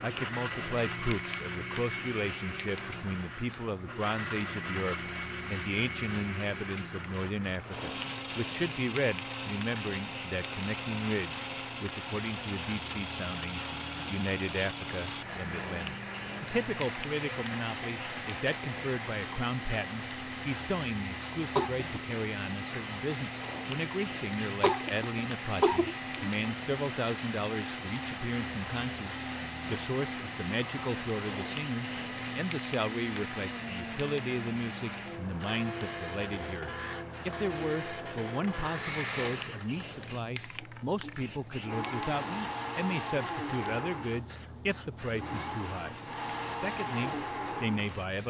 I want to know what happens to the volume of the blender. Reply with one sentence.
The volume of the blender stays about the same.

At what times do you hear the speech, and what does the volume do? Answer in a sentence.
The speech can be heard from 0.0 to 48.2 s, at a steady volume.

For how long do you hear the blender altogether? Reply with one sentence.
The blender can be heard for 48 seconds in total.